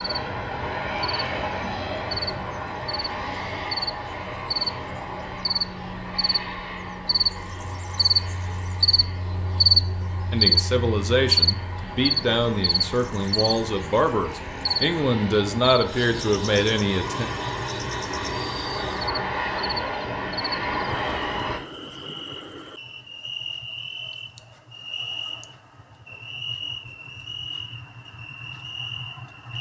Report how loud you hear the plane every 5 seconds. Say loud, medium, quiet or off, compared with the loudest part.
loud, medium, medium, loud, loud, off.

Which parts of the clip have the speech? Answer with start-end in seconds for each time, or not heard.
10.3-17.2.